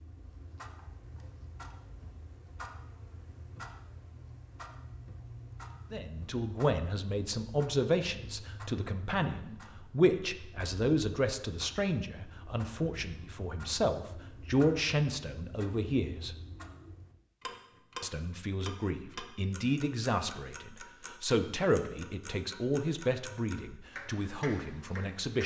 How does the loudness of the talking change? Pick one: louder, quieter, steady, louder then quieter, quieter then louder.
steady.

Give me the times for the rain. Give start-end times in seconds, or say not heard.
not heard.